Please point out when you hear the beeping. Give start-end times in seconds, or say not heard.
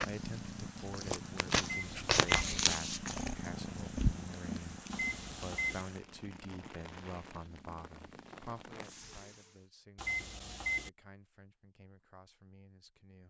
1.6-2.3, 4.9-5.8, 9.9-10.9.